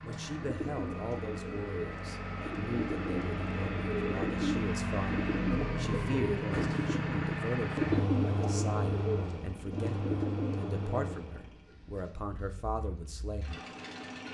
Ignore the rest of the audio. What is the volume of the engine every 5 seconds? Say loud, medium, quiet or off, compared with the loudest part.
loud, loud, medium.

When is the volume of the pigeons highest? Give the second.
8 s.